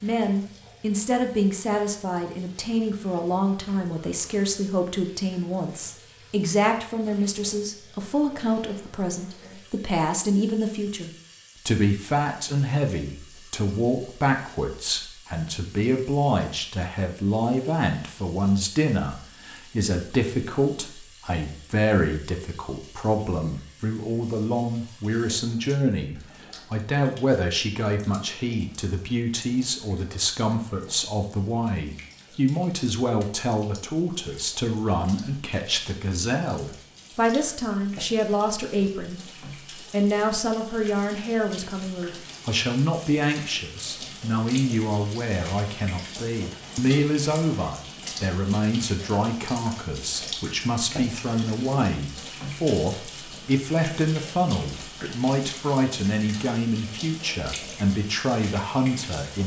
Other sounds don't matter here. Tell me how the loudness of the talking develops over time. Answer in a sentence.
The loudness of the talking stays about the same.